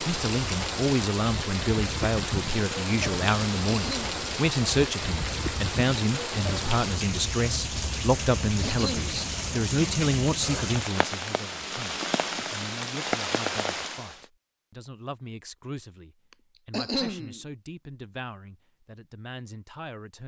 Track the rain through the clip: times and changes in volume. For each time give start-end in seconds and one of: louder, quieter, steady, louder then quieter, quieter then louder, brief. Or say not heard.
0.0-14.2 steady.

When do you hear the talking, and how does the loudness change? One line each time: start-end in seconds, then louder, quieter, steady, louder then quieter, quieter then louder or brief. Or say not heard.
0.0-20.2 quieter.